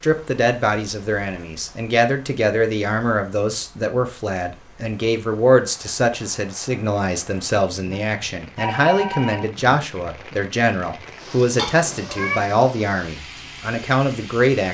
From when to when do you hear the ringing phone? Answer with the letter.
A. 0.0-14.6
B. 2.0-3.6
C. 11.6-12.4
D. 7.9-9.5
D.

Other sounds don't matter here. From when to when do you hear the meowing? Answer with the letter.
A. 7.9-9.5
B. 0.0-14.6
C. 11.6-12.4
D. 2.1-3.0
C.